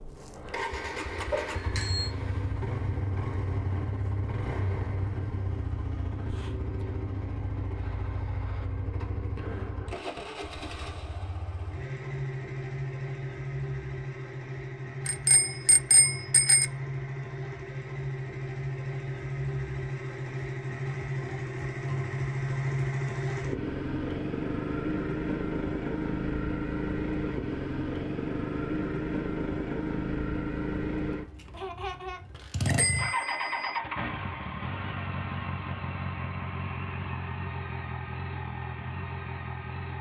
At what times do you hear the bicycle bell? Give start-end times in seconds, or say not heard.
1.3-2.1, 15.1-16.6, 32.6-33.8.